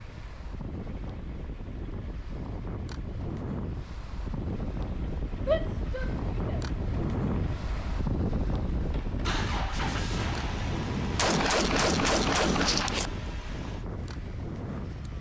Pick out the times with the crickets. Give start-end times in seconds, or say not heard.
not heard.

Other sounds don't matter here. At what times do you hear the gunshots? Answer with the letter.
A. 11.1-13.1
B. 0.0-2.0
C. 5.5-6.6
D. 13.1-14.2
A.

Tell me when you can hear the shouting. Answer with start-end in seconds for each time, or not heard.
5.5-6.6.